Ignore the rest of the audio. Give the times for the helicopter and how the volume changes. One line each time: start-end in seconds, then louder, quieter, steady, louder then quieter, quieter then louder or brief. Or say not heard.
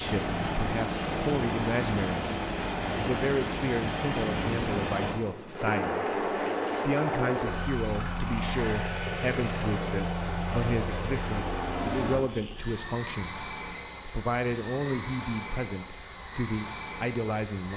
0.0-17.7 steady.